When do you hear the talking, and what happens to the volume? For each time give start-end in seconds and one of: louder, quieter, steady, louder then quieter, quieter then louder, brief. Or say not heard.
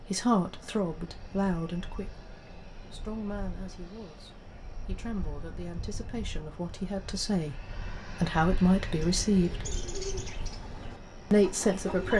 0.0-2.3 brief
2.9-9.7 louder
11.3-12.1 brief.